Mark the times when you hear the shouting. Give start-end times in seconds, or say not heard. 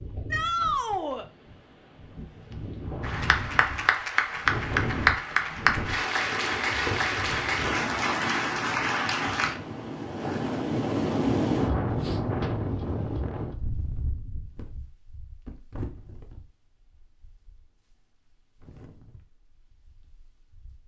0.3-1.2.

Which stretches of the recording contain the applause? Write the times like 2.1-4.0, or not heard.
3.0-9.6.